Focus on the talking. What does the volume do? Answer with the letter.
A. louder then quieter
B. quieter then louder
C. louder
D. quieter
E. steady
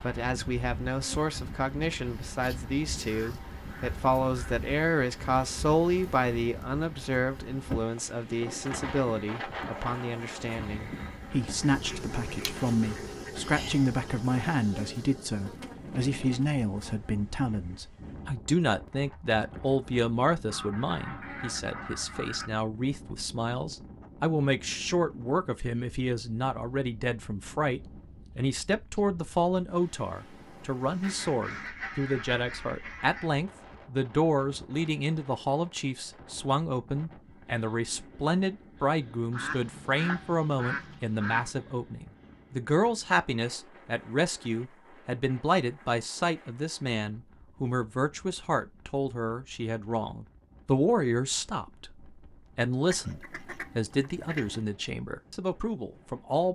E.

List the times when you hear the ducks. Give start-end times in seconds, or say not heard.
3.0-4.6, 11.3-13.3, 20.4-22.5, 31.0-33.3, 39.3-41.5, 52.9-54.6.